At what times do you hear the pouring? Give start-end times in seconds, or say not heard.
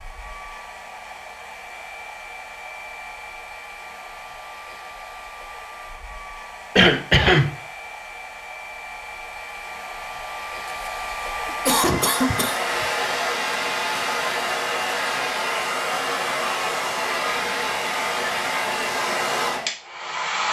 not heard.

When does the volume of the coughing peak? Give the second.
7 s.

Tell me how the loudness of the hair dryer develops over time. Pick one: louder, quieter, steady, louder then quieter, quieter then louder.
louder.